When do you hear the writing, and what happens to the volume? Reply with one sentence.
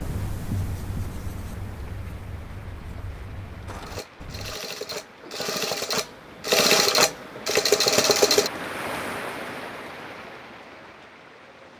The writing can be heard from 0.0 to 4.6 s, getting quieter.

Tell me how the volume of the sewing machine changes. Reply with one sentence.
The volume of the sewing machine goes up.